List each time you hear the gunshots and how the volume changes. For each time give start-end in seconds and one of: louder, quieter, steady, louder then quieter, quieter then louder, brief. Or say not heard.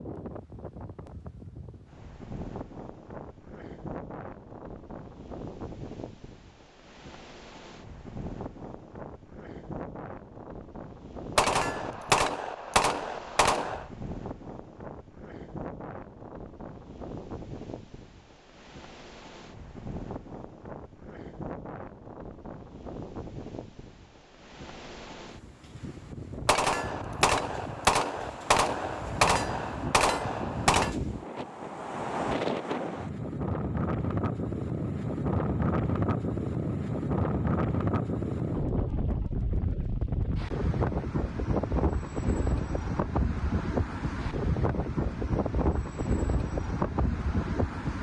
11.3-13.8 brief
26.4-30.9 steady.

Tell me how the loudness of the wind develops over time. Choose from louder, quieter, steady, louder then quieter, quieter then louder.
louder.